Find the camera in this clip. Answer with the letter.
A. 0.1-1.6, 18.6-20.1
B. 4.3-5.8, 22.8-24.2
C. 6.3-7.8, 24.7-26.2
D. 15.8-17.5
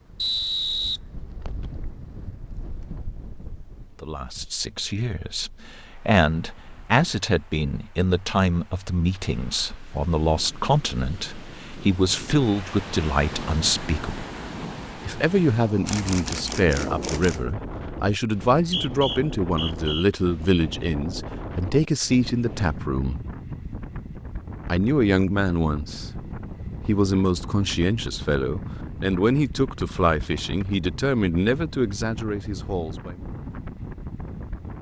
D.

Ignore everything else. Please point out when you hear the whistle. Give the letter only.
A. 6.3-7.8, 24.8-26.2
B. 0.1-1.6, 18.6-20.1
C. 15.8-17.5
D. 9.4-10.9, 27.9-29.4
B.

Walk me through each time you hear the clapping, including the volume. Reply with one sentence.
You can't hear the clapping here.